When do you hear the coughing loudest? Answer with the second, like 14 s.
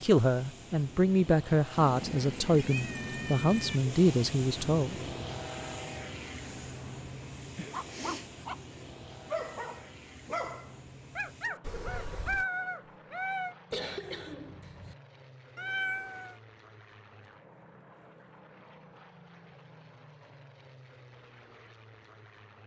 14 s.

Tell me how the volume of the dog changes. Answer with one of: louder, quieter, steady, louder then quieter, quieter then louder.
louder.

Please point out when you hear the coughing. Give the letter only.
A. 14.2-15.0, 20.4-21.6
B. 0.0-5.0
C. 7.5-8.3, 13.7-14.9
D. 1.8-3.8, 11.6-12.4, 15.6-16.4
C.